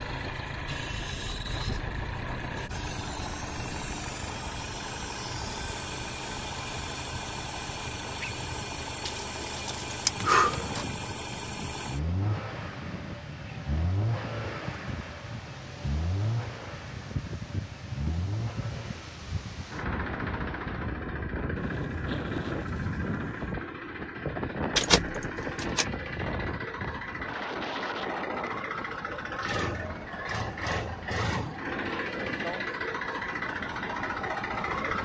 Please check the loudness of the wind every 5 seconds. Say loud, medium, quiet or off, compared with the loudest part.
medium, medium, medium, medium, loud, loud, medium.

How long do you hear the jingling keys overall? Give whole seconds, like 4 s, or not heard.
3 s.